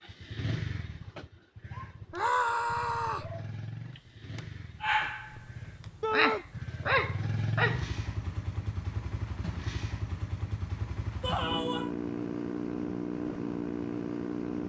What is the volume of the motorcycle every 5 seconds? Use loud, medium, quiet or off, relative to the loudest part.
medium, loud, loud.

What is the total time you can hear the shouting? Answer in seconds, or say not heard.
2 s.